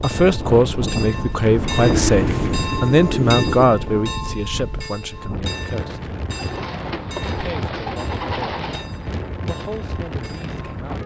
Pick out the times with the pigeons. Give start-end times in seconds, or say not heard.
1.7-3.6, 6.3-8.8.